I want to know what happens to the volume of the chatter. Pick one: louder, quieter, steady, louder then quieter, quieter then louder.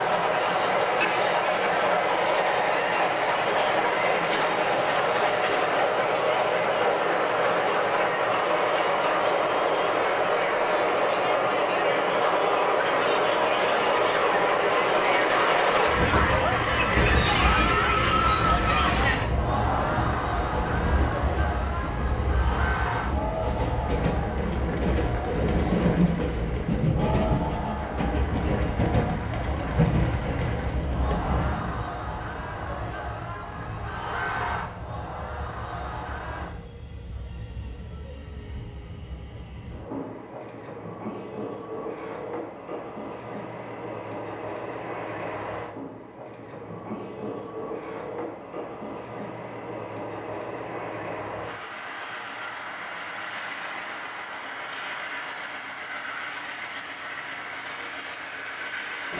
louder then quieter.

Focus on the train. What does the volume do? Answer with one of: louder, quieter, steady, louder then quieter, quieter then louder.
quieter.